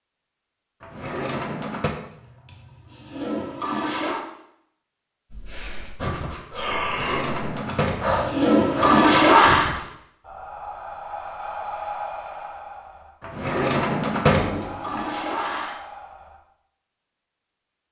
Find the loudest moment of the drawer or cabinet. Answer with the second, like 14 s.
14 s.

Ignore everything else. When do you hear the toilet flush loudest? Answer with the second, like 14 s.
9 s.